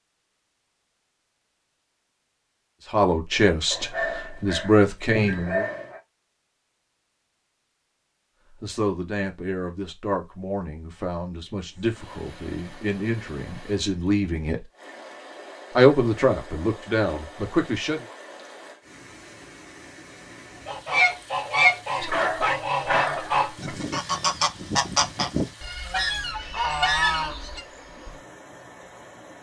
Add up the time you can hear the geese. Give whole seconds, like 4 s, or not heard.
7 s.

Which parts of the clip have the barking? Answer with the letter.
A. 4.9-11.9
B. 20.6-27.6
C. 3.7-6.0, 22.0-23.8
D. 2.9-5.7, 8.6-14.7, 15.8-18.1
C.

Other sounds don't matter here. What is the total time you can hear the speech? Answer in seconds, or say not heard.
11 s.